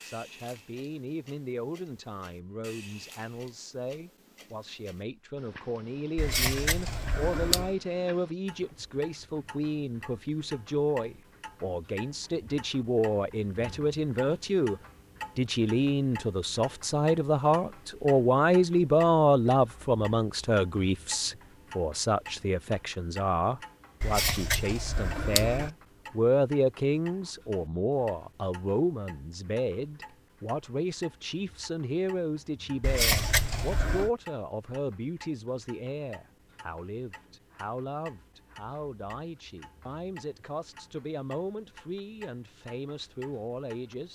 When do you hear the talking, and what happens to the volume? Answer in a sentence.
The talking can be heard from 0.0 to 44.1 s, getting louder then quieter.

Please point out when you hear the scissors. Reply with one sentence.
The scissors can be heard from 6.2 to 7.7 s, from 24.0 to 25.7 s and from 32.8 to 34.1 s.